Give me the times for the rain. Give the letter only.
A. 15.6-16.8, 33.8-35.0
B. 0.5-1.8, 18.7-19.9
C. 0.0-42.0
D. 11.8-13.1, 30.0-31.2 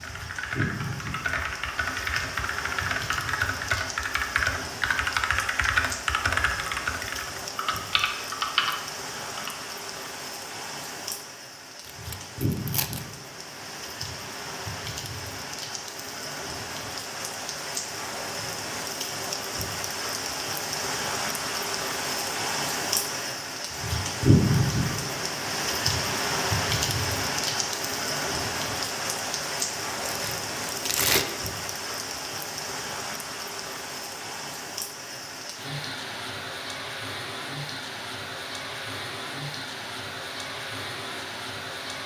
C.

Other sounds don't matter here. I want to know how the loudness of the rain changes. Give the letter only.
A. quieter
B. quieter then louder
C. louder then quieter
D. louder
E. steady
C.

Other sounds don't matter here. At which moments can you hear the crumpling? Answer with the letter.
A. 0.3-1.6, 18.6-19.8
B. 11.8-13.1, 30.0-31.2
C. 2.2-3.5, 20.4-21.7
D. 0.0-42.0
B.